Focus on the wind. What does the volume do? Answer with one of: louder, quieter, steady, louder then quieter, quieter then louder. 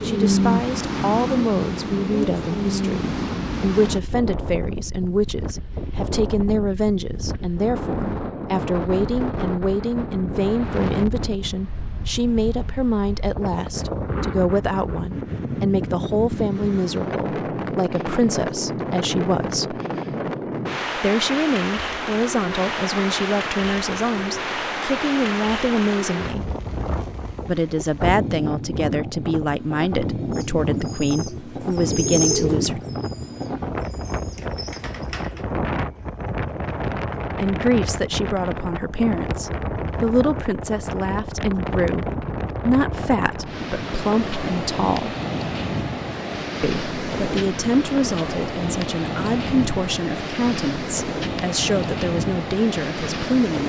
steady.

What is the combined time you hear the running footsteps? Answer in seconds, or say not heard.
not heard.